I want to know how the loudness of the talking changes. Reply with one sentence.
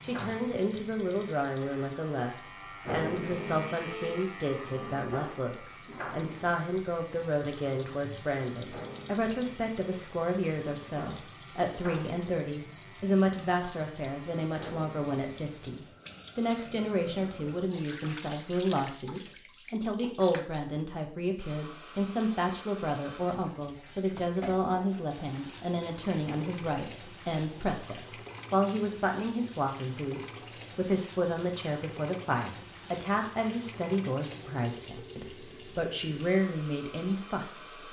The volume of the talking stays about the same.